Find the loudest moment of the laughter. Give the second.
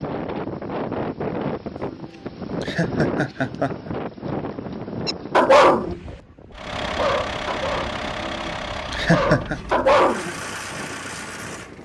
9 s.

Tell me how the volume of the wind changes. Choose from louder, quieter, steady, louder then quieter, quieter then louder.
quieter.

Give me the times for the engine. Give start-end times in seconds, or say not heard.
6.5-11.7.